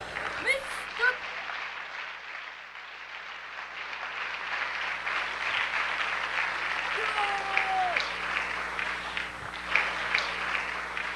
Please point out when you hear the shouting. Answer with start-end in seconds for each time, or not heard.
0.4-1.1, 7.0-8.1.